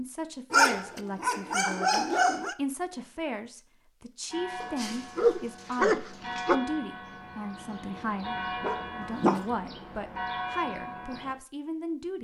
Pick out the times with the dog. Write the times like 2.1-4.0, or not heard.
0.5-2.5, 4.6-6.5, 8.6-9.4.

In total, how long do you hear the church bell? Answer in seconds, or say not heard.
7 s.